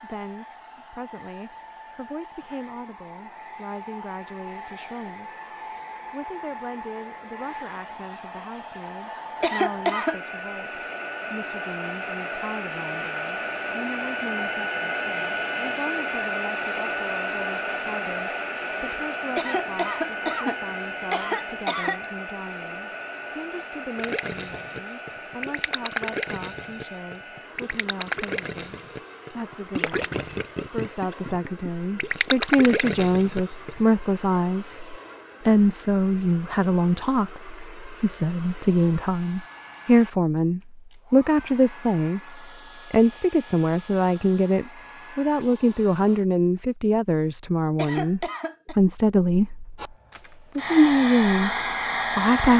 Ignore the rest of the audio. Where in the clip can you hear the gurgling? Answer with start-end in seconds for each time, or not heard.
23.9-33.7.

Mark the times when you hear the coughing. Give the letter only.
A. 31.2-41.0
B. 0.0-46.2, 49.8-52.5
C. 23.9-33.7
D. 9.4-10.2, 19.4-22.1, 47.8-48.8
D.